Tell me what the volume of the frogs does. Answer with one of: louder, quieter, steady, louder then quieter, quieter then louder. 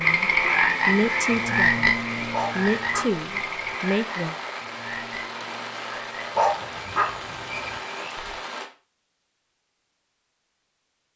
quieter.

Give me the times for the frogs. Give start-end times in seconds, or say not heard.
0.0-8.4.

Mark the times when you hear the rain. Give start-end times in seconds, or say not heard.
0.0-8.7.